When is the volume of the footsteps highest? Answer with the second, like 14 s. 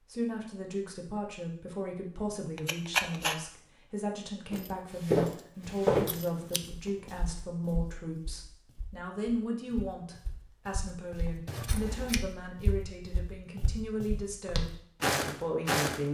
6 s.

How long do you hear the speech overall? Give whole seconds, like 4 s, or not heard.
16 s.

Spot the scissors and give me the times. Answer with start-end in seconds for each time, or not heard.
2.5-3.4, 5.7-6.6, 11.4-12.2.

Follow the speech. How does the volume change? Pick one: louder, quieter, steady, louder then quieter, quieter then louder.
steady.